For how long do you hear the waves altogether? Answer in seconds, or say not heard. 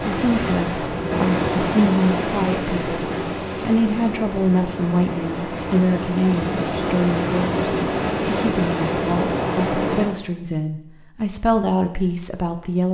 10 s.